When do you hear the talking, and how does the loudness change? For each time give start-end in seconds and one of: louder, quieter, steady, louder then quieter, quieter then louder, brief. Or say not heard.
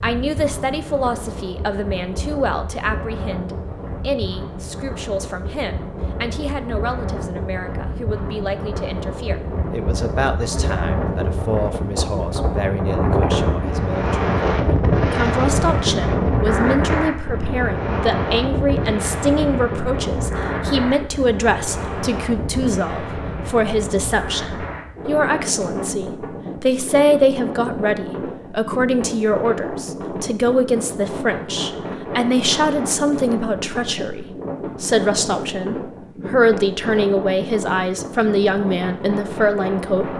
0.0-40.1 louder.